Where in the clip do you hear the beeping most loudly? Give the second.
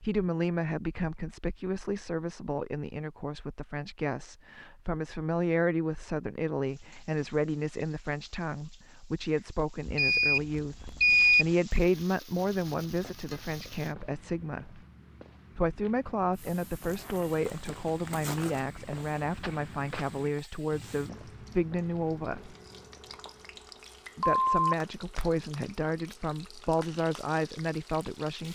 11 s.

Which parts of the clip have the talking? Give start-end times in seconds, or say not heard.
0.0-14.8, 15.6-22.6, 24.1-28.4.